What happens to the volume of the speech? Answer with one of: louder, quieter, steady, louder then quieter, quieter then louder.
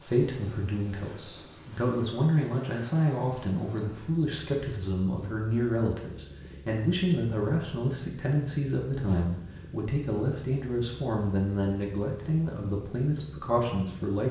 steady.